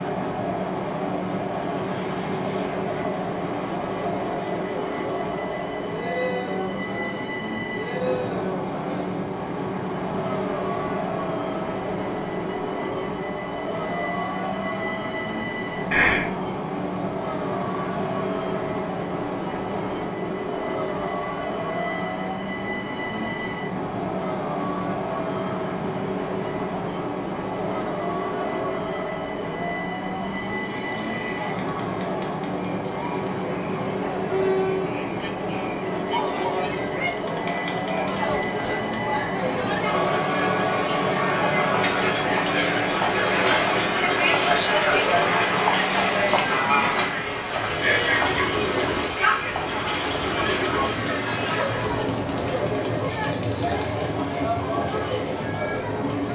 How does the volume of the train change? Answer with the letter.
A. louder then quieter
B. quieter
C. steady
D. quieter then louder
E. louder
C.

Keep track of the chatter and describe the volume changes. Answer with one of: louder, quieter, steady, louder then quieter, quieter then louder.
louder.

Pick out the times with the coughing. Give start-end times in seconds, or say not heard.
15.9-16.3.